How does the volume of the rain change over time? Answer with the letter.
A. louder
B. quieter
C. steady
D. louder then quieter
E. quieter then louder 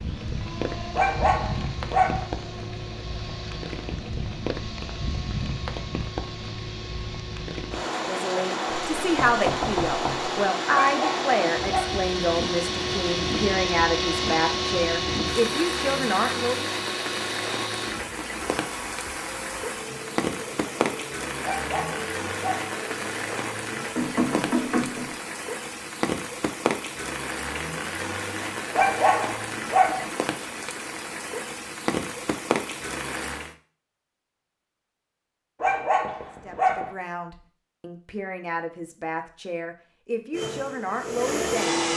C.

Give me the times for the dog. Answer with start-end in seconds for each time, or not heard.
0.9-2.2, 10.8-12.1, 21.4-22.8, 28.7-30.1, 35.6-36.9.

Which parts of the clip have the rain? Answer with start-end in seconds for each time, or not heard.
0.0-33.5.